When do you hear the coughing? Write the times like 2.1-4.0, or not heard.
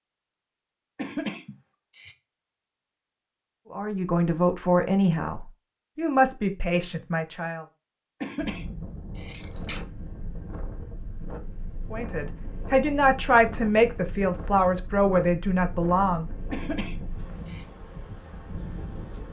0.9-2.1, 8.2-9.8, 16.5-17.6.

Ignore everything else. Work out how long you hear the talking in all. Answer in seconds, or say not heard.
8 s.